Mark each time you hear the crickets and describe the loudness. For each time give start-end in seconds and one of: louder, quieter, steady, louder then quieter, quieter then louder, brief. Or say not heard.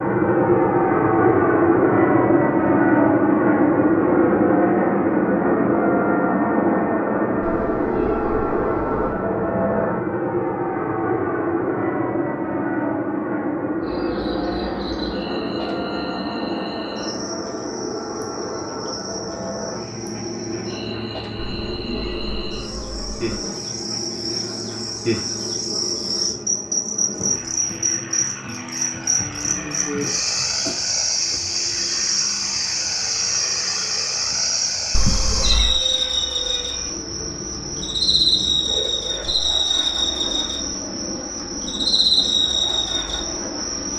13.8-43.9 louder.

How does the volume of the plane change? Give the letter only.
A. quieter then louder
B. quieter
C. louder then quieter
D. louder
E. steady
B.